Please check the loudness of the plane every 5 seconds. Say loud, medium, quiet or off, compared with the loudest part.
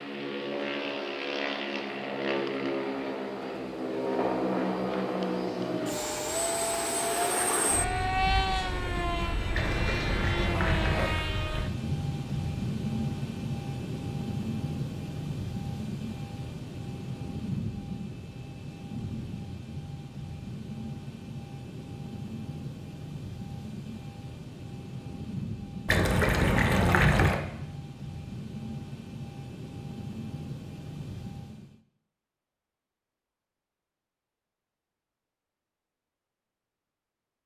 loud, loud, loud, medium, medium, medium, medium, off.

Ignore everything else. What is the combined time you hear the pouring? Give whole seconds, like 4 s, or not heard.
3 s.